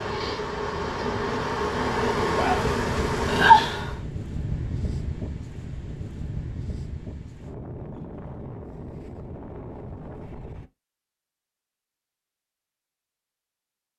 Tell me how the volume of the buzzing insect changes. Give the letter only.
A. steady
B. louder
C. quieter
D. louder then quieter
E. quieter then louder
B.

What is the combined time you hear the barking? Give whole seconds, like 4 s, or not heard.
not heard.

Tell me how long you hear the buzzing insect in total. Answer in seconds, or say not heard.
4 s.